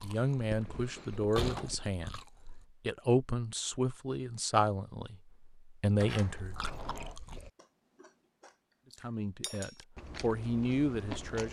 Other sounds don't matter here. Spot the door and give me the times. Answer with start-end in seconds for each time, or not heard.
0.9-1.8, 6.0-7.2.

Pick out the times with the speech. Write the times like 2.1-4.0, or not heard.
0.0-6.5, 9.0-11.4.